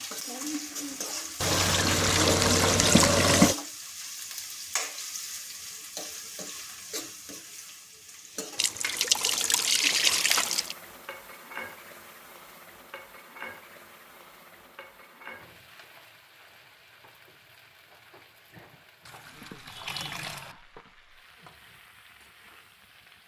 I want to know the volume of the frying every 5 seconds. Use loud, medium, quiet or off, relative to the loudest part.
loud, medium, medium, quiet, quiet.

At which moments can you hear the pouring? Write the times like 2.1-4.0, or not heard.
1.4-3.5, 8.6-10.8, 19.1-20.6.